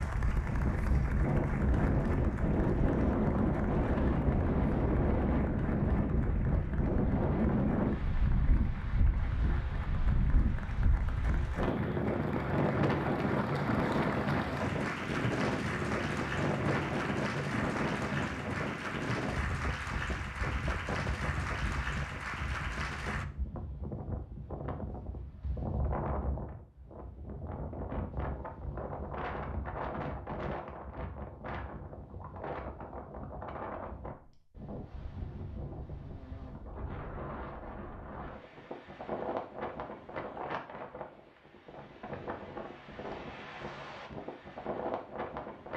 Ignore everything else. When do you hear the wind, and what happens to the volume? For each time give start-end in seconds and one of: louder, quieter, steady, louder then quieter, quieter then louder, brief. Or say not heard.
0.0-45.7 quieter.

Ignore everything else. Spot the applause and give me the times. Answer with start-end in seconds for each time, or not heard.
0.0-23.2.